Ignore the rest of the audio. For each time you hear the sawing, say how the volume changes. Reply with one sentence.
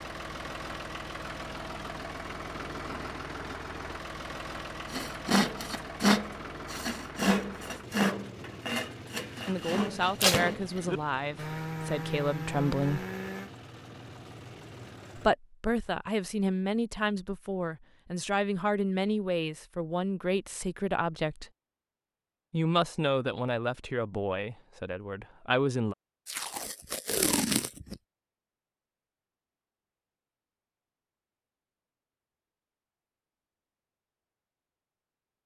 You can hear the sawing from 4.9 to 13.5 s, getting quieter.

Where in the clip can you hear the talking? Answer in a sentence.
You can hear the talking from 9.4 to 13.1 s, from 15.2 to 21.5 s and from 22.5 to 25.9 s.